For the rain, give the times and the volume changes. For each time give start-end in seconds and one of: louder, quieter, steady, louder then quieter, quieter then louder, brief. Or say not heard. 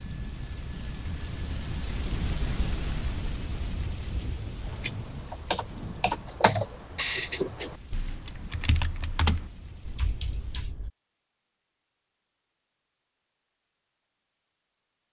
0.0-10.7 quieter.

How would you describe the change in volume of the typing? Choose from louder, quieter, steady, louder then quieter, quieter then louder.
louder then quieter.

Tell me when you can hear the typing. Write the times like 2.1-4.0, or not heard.
4.6-10.9.